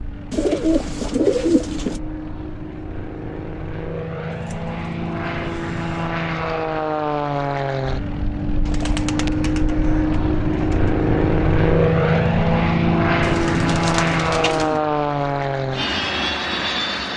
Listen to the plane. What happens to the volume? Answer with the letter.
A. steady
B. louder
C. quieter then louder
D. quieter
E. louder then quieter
B.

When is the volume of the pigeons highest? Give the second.
1 s.